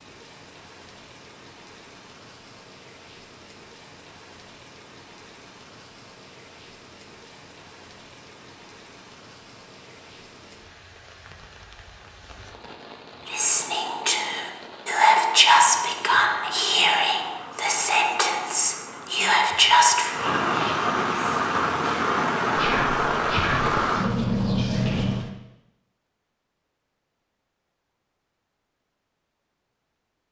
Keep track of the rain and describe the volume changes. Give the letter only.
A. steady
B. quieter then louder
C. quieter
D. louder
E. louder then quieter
D.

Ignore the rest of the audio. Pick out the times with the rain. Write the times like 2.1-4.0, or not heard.
0.0-25.3.